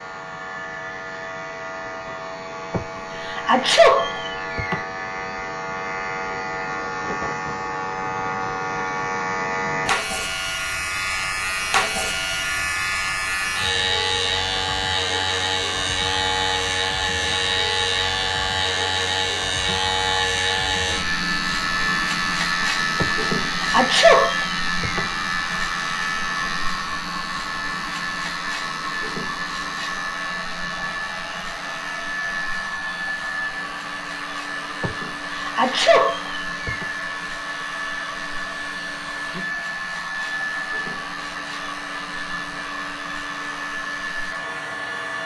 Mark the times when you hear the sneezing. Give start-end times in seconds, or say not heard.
2.7-4.8, 22.9-25.1, 34.8-36.9.